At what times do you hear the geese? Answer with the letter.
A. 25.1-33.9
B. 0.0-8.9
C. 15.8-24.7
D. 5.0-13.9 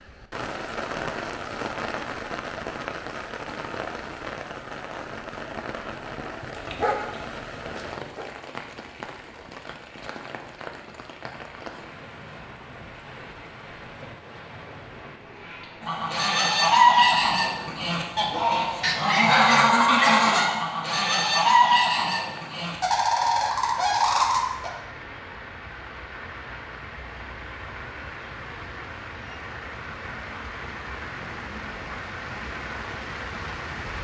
C.